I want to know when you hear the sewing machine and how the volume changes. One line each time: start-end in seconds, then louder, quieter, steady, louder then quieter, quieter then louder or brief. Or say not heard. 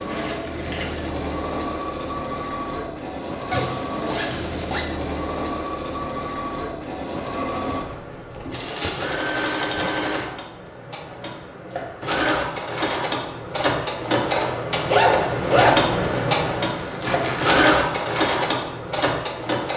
0.0-19.7 louder.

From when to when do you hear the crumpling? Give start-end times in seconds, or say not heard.
0.1-1.1, 8.4-10.3, 16.0-17.6.